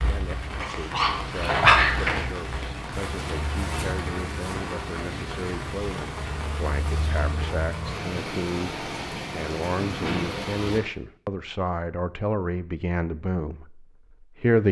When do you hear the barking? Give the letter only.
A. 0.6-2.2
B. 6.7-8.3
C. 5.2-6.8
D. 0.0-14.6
A.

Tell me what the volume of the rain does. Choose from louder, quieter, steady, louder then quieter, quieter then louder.
steady.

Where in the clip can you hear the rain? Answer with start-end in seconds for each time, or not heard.
0.0-10.8.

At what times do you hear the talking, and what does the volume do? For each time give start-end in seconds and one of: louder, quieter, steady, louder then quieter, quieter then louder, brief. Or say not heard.
0.0-14.6 louder.